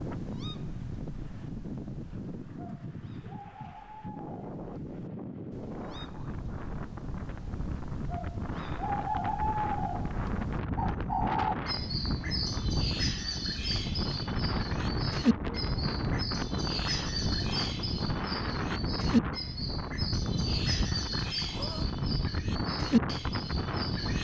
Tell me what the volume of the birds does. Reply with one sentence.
The loudness of the birds goes up.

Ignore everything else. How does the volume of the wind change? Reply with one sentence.
The volume of the wind goes up.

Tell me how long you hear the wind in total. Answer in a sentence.
You can hear the wind for 24 seconds altogether.